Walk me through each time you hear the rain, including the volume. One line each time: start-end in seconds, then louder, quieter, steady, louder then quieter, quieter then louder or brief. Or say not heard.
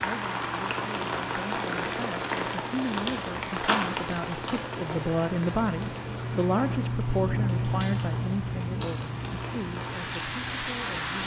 0.0-11.2 quieter then louder.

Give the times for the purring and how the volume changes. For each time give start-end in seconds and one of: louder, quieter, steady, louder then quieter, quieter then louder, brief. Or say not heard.
0.0-11.2 louder then quieter.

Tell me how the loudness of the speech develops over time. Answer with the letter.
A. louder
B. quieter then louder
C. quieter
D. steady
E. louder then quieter
E.